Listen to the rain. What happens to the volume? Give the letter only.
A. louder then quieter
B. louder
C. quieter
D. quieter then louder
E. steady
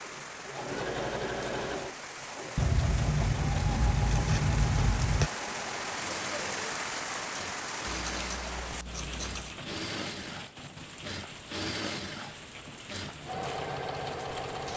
A.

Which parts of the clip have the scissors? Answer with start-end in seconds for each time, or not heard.
2.5-5.3, 7.8-9.6.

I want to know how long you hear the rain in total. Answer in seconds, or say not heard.
15 s.